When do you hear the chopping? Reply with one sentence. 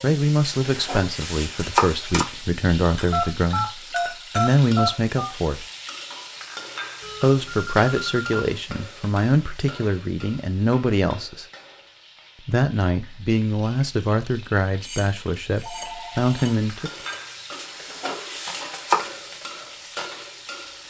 The chopping can be heard from 0.7 to 2.2 s and from 17.6 to 19.1 s.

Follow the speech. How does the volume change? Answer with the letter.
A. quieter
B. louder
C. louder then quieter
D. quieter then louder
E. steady
E.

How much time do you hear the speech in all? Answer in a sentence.
The speech can be heard for 14 seconds in total.